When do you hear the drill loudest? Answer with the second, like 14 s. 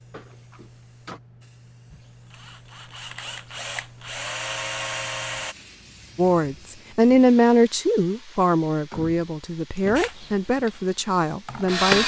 12 s.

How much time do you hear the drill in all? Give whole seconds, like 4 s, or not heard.
6 s.